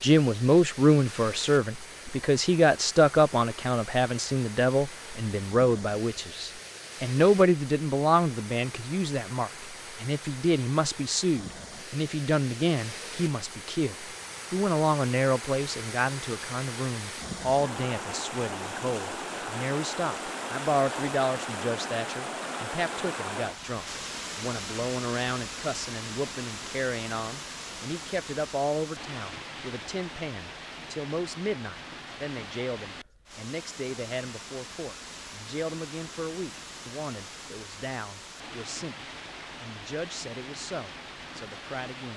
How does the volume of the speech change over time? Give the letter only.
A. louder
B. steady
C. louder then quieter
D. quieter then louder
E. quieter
E.